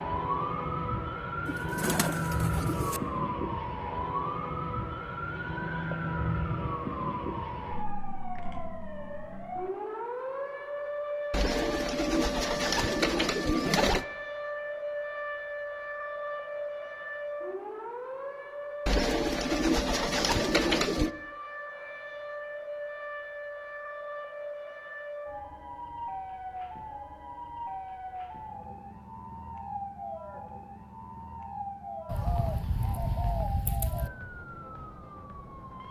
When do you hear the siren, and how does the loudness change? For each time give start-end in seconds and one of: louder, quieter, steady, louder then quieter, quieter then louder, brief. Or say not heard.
0.0-35.8 quieter.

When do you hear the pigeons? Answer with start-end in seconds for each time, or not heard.
1.4-3.0, 11.3-14.1, 18.9-21.1, 32.0-34.1.